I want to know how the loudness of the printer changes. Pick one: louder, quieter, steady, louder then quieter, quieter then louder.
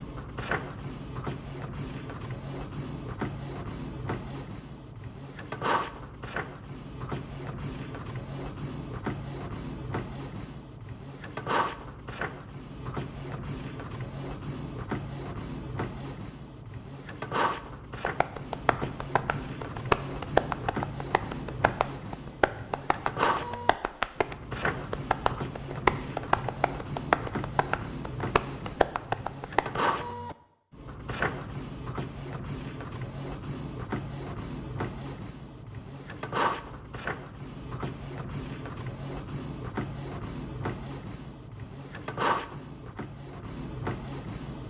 steady.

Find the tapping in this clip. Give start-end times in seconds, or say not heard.
18.0-29.8.